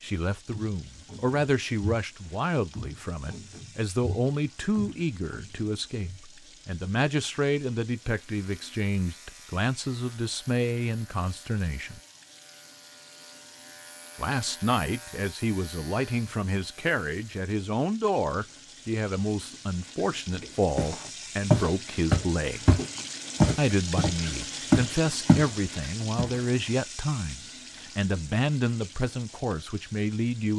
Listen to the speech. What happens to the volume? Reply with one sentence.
The loudness of the speech stays about the same.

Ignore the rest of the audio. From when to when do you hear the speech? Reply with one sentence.
The speech can be heard from 0.0 to 12.0 s, from 14.2 to 22.6 s and from 23.6 to 30.5 s.